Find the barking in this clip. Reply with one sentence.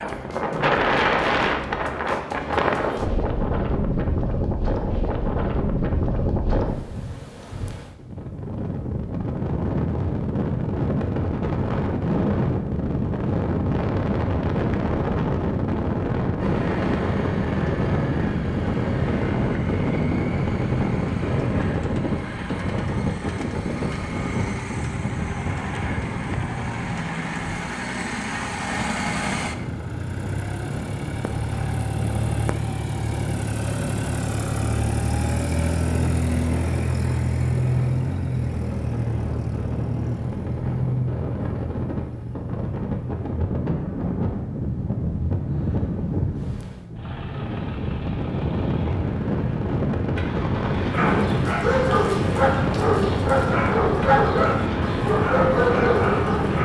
You can hear the barking from 50.9 to 56.6 s.